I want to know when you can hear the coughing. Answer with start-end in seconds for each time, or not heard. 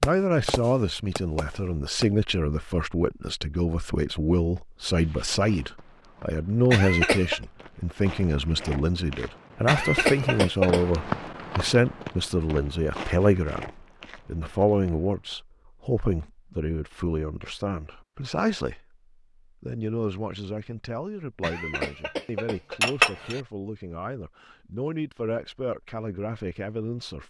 6.7-7.4, 9.7-11.0, 21.4-23.4.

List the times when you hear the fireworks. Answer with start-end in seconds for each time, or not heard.
0.0-2.1.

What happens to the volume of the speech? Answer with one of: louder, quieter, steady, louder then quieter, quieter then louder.
quieter.